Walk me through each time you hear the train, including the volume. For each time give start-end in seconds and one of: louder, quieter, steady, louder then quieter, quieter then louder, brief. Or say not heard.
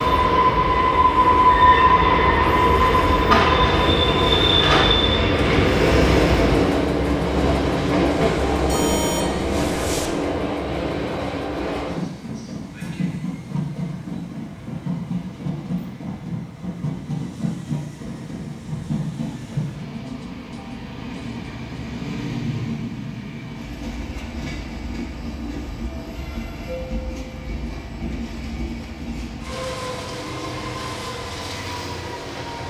0.0-32.6 quieter.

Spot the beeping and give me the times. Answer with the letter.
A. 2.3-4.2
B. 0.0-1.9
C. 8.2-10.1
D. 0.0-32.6
C.